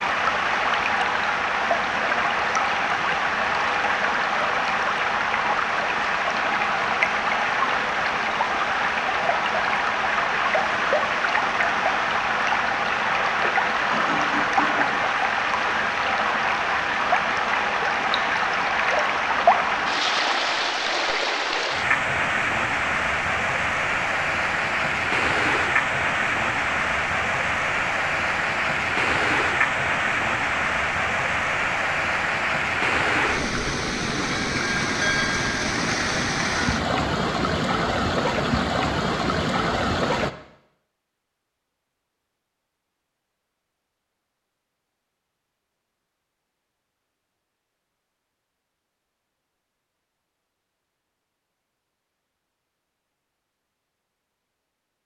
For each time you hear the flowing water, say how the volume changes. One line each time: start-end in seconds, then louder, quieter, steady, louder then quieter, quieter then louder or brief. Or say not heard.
0.0-40.3 steady.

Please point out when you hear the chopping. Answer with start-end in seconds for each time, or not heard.
not heard.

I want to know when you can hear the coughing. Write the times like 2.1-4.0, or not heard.
13.3-14.9.